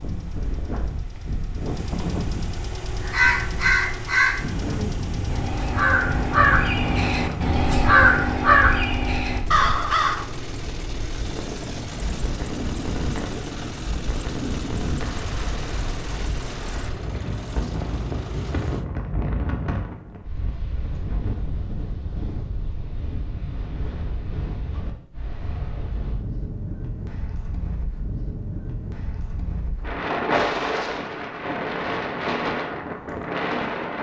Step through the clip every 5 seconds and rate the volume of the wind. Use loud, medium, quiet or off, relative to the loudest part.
medium, medium, medium, medium, medium, medium, loud.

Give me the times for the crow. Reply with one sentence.
You can hear the crow from 2.9 to 10.2 s.